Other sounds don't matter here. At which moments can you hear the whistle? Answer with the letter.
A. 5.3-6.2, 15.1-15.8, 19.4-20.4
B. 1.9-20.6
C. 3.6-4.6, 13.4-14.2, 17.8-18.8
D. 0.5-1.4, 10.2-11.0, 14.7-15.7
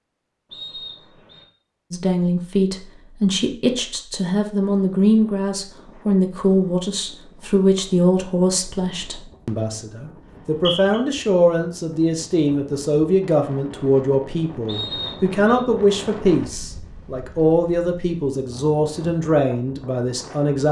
D.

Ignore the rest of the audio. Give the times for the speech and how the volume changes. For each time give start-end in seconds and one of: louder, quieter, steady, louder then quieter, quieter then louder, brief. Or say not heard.
1.9-20.6 steady.